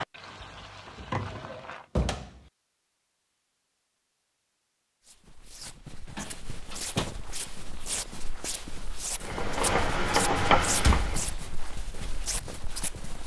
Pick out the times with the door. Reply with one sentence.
You can hear the door from 0.8 to 2.4 s, from 6.2 to 7.1 s and from 10.8 to 11.3 s.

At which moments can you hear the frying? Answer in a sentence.
You can hear the frying from 0.0 to 1.9 s and from 9.2 to 11.2 s.